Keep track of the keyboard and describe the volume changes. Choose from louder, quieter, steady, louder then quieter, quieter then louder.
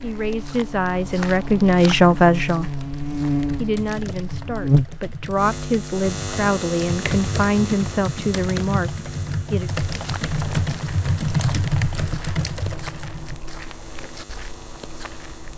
louder.